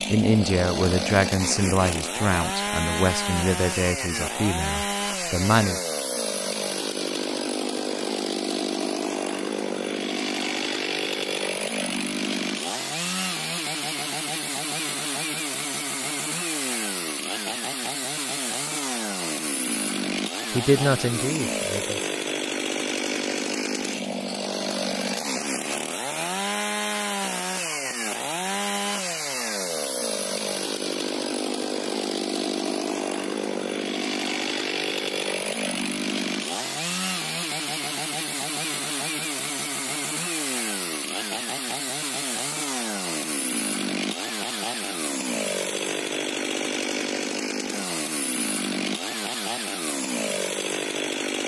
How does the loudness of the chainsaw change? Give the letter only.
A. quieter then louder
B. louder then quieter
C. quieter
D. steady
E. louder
D.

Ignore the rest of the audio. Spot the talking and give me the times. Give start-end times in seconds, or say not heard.
0.1-5.8, 20.5-22.0.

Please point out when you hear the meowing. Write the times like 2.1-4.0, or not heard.
not heard.